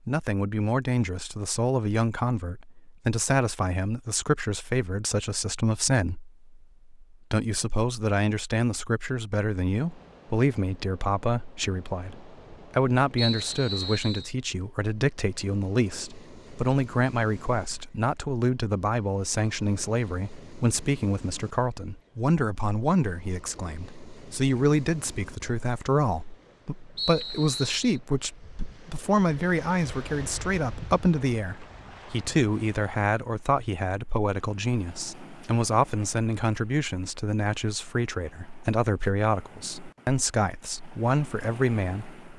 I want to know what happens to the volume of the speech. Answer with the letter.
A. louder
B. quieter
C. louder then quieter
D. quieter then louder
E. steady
E.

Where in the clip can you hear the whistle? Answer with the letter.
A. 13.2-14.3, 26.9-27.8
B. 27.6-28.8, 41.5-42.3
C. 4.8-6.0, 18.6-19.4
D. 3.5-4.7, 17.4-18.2
A.